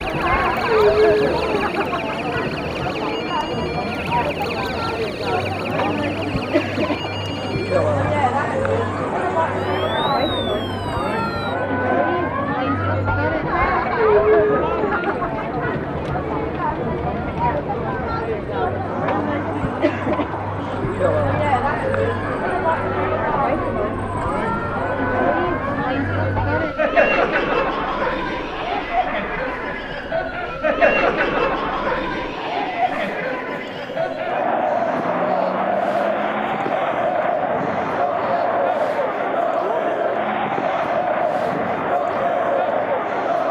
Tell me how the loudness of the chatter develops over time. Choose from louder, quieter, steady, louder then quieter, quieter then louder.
steady.